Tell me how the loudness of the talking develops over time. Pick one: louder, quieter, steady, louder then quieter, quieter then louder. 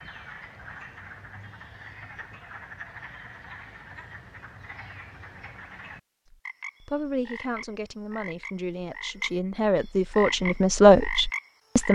louder.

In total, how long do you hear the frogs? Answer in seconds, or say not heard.
12 s.